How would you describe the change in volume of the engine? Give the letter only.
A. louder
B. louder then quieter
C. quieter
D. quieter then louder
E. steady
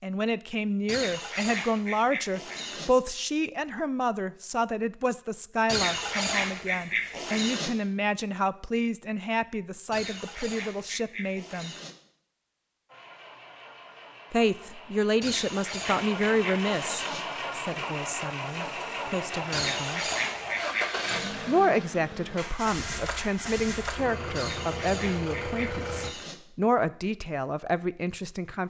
A.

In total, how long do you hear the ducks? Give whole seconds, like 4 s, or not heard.
12 s.